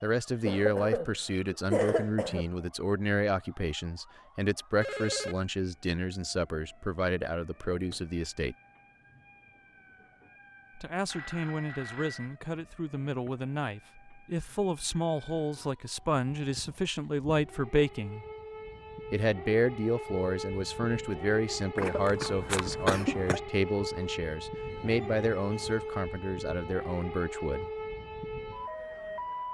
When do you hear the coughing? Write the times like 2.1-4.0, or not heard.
0.4-2.5, 21.8-23.4.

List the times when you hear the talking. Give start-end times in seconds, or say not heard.
0.0-8.6, 10.8-18.2, 19.1-27.7.